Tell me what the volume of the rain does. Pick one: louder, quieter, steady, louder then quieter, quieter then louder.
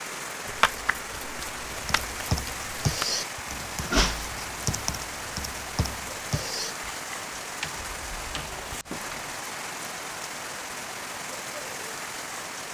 steady.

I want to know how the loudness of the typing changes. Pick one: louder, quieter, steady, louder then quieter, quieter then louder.
quieter.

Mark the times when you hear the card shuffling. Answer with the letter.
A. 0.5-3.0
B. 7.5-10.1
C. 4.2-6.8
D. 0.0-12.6
A.